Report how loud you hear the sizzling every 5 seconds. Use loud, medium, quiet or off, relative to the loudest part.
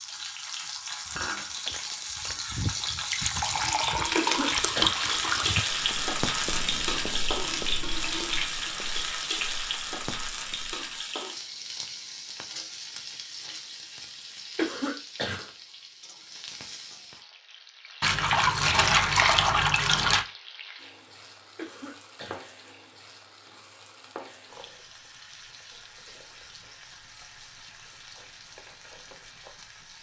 loud, loud, medium, quiet, quiet, quiet.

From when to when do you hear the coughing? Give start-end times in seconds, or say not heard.
4.2-5.0, 14.6-15.4, 21.6-22.4.